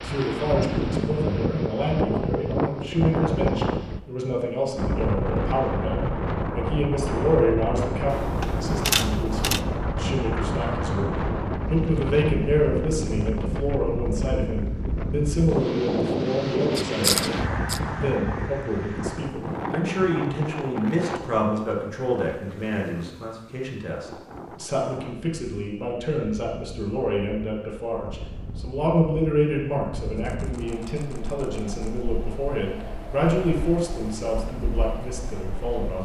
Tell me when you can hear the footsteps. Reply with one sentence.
You can't hear the footsteps here.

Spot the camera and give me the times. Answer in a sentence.
The camera can be heard from 8.1 to 9.6 s, from 16.8 to 17.8 s and from 30.1 to 32.0 s.